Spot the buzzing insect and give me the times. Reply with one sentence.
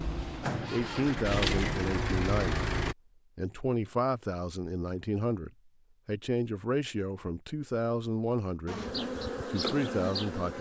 The buzzing insect can be heard from 0.0 to 1.7 s and from 8.7 to 10.5 s.